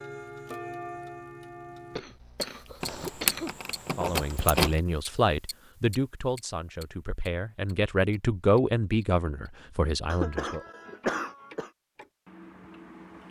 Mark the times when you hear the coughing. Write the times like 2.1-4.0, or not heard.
1.9-3.5, 10.1-11.7.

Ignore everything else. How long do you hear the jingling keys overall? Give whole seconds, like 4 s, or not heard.
2 s.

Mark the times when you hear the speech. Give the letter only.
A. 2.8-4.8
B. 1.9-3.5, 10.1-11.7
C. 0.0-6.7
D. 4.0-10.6
D.